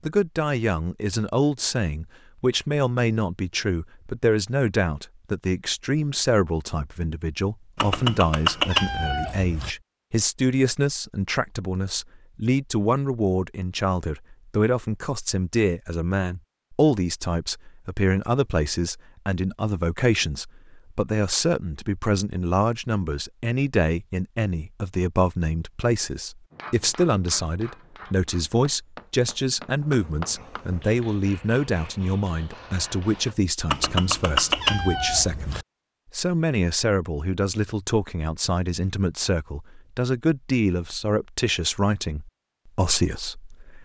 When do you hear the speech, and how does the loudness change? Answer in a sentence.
The speech can be heard from 0.0 to 43.7 s, at a steady volume.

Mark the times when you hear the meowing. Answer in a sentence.
The meowing can be heard from 7.8 to 9.7 s and from 33.7 to 35.6 s.